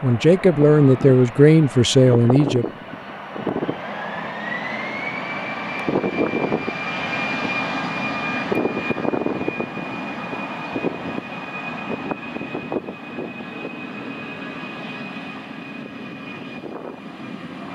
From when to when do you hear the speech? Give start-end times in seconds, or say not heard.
0.0-2.6.